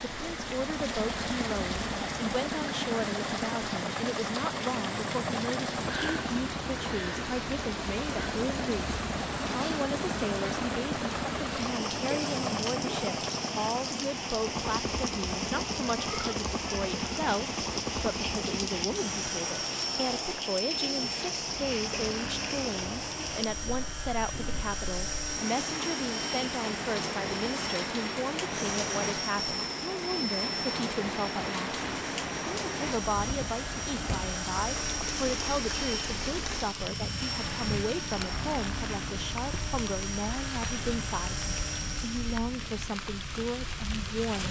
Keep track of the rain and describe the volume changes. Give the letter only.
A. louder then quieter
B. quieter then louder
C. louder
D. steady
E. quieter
D.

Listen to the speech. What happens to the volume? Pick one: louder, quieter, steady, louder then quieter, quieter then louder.
steady.